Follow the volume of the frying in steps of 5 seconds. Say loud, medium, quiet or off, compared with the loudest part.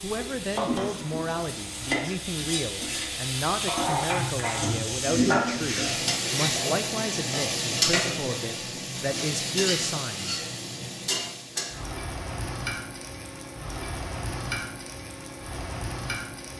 loud, loud, medium, medium.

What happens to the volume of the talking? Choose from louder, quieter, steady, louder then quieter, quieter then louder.
steady.